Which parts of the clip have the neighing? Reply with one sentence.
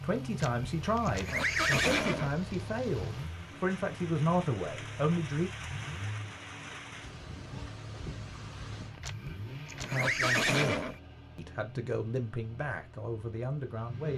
The neighing can be heard from 0.4 to 2.4 s and from 9.0 to 11.0 s.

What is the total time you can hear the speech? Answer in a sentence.
You can hear the speech for 10 seconds altogether.